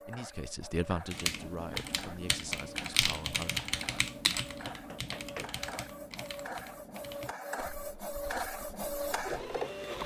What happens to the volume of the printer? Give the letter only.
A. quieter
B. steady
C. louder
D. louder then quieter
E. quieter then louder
C.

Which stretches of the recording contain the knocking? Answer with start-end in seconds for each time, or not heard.
4.7-5.6.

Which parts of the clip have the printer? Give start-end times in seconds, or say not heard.
0.0-10.0.